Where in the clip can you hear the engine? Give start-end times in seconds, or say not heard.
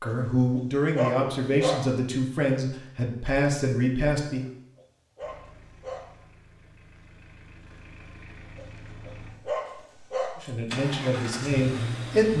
5.2-12.3.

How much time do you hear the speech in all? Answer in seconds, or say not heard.
6 s.